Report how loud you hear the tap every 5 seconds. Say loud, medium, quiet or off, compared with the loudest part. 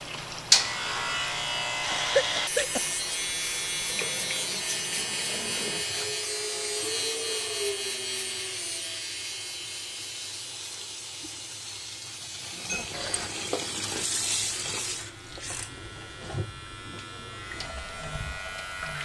medium, medium, loud, medium.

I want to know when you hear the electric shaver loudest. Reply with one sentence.
The loudest moment of the electric shaver is at 1 second.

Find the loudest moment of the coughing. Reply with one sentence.
The volume of the coughing peaks at 2 seconds.